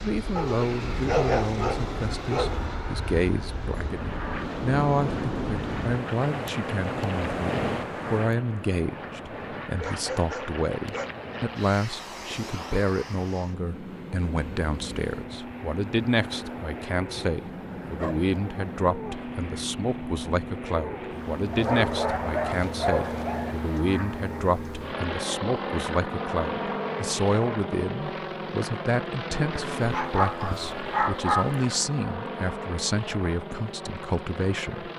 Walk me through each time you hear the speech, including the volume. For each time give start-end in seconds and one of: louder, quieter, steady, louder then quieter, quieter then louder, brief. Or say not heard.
0.0-34.9 steady.